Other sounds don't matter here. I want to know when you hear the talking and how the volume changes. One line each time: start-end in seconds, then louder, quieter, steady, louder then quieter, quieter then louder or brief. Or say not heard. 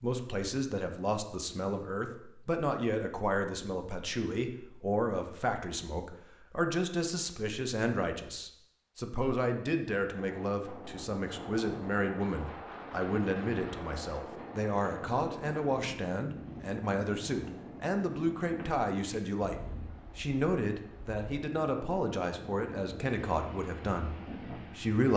0.0-25.1 steady.